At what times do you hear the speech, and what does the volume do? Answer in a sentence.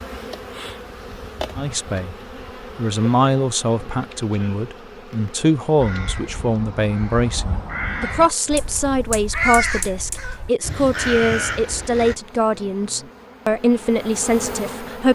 The speech can be heard briefly from 1.6 to 2.1 s; and from 2.8 to 15.0 s, at a steady volume.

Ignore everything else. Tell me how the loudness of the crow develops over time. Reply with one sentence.
The loudness of the crow goes up.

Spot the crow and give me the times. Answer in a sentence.
The crow can be heard from 5.8 to 12.2 s.